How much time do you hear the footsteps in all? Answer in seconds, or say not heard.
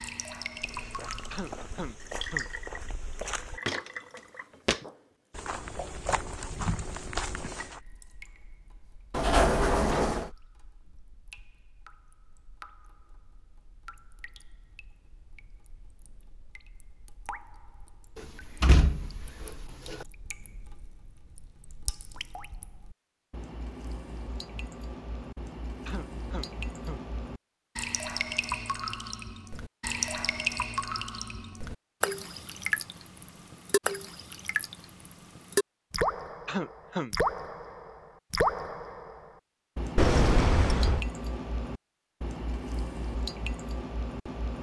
7 s.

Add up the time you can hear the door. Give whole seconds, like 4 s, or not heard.
4 s.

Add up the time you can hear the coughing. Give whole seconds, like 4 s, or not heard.
3 s.